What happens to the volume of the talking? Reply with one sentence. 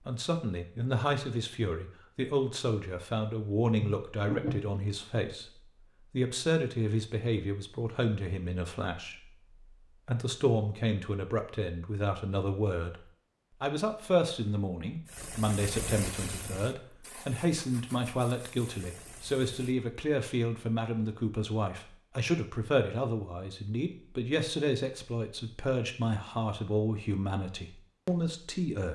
The loudness of the talking stays about the same.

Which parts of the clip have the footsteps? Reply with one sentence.
You can't hear the footsteps here.